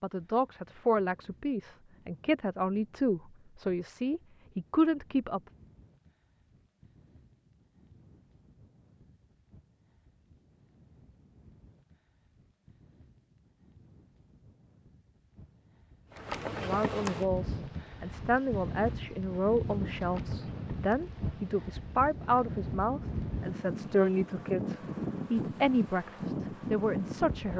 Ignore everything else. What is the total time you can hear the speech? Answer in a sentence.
You can hear the speech for 16 seconds altogether.